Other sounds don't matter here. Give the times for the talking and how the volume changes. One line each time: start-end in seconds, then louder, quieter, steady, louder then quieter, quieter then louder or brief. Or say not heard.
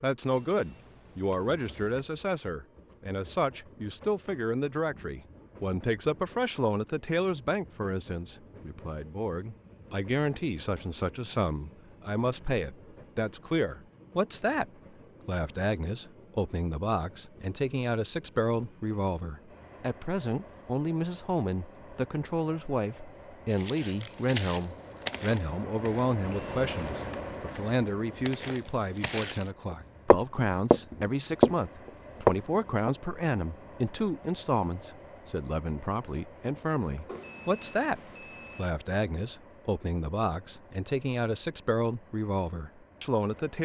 0.0-43.6 steady.